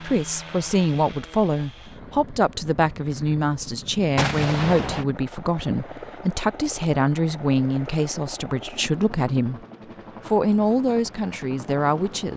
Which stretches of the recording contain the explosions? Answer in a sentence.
The explosions can be heard from 4.2 to 5.0 s.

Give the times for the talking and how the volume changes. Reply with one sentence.
You can hear the talking from 0.0 to 9.6 s, at a steady volume; and briefly from 10.2 to 12.3 s.